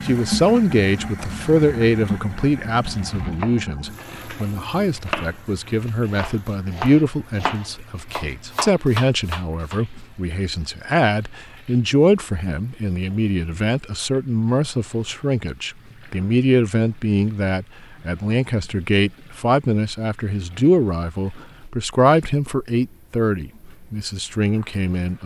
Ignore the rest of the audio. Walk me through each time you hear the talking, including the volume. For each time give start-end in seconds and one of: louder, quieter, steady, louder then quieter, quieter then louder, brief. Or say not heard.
0.0-25.2 steady.